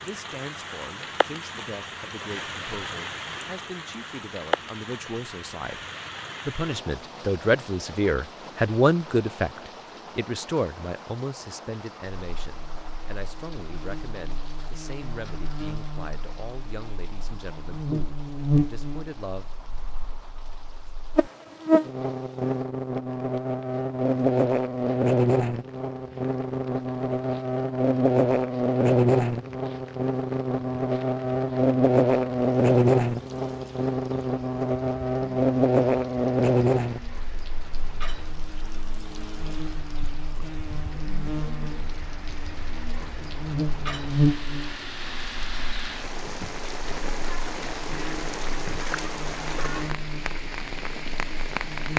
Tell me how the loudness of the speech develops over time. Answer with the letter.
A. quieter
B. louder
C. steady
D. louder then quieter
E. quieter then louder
D.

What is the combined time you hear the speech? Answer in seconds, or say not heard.
19 s.